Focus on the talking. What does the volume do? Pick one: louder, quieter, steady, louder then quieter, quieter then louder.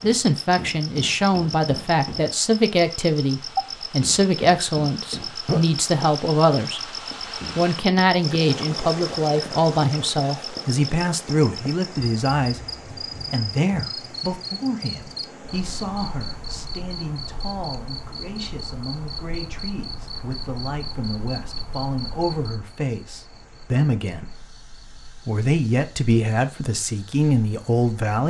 quieter then louder.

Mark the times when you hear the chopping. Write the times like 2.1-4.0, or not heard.
not heard.